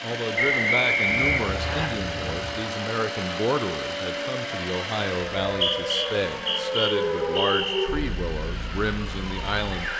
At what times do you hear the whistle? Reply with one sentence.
You can hear the whistle from 0.3 to 1.9 s and from 5.5 to 7.9 s.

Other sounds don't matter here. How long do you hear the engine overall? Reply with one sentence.
You can hear the engine for 10 seconds altogether.